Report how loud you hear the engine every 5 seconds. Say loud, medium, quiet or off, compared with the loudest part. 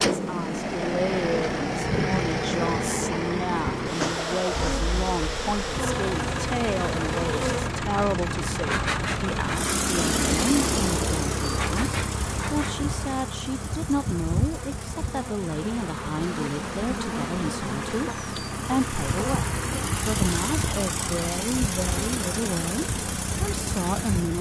loud, loud, loud, medium, loud.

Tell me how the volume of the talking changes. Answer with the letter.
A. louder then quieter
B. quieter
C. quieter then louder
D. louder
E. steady
E.